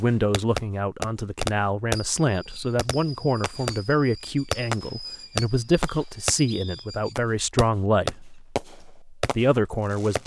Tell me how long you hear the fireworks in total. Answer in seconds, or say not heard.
10 s.